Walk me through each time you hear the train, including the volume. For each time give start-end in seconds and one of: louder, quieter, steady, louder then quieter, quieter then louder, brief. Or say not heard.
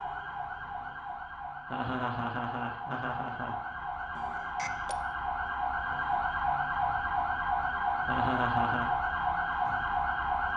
not heard.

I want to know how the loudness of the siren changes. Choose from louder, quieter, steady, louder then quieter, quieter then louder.
louder.